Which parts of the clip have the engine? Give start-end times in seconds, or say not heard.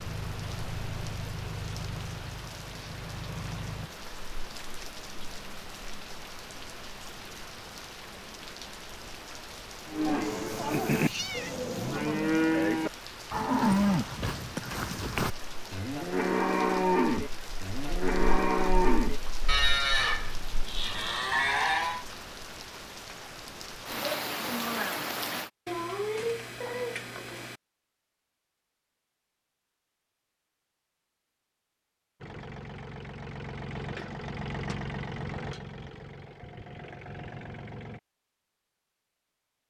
0.0-3.9, 32.2-38.0.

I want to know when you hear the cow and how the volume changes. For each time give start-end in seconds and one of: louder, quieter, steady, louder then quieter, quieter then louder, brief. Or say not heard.
9.8-22.1 steady.